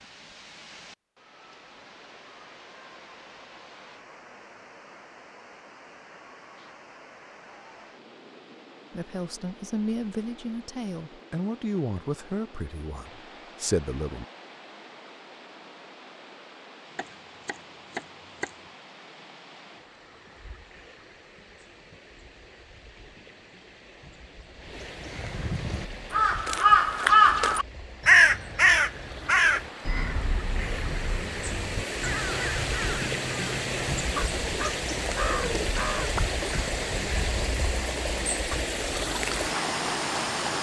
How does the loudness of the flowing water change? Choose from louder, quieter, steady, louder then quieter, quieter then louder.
louder.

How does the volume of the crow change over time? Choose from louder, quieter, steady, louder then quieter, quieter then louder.
quieter.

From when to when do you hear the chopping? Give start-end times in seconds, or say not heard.
16.9-18.6.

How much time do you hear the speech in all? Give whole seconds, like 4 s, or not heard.
5 s.